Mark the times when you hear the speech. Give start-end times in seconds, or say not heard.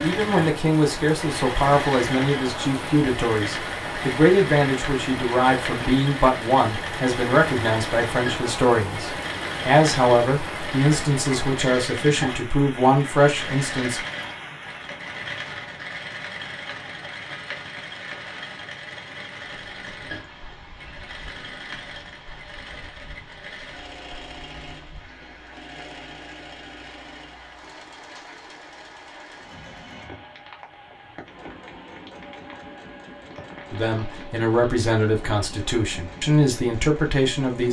0.0-14.0, 33.7-37.6.